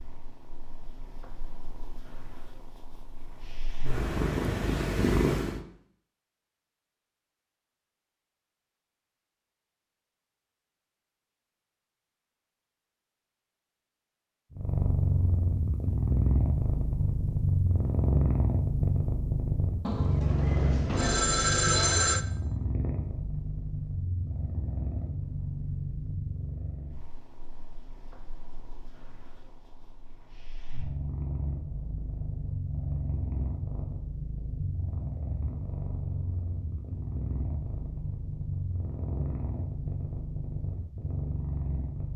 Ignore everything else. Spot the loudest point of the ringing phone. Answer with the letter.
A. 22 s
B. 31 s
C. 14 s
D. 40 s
A.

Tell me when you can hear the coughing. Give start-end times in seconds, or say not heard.
not heard.